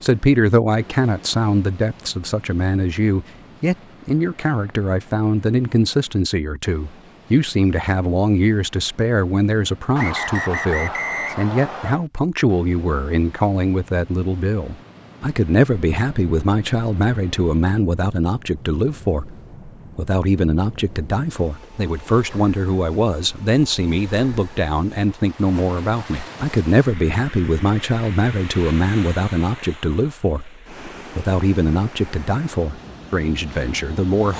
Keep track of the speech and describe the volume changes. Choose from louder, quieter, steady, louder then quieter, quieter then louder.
steady.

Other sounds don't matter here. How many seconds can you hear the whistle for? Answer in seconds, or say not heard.
2 s.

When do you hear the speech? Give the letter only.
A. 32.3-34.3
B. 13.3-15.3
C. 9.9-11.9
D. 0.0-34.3
D.